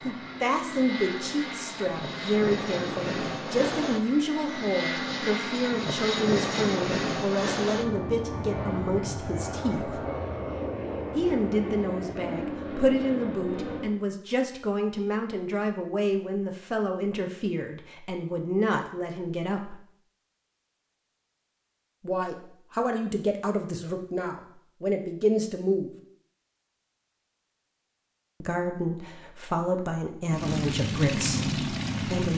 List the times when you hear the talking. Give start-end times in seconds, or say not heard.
0.0-10.0, 11.2-19.8, 22.0-25.9, 28.4-32.3.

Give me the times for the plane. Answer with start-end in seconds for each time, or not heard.
0.0-14.0, 30.2-32.3.